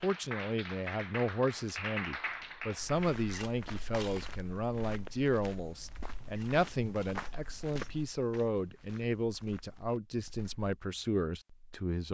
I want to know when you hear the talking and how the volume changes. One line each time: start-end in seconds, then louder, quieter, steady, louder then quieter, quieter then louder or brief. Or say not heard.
0.0-12.0 steady.